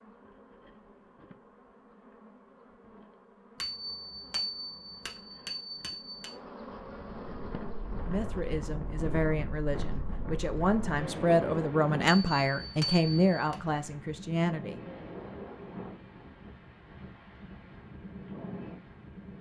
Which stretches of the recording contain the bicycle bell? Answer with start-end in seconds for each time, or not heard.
3.6-6.3, 12.1-13.6.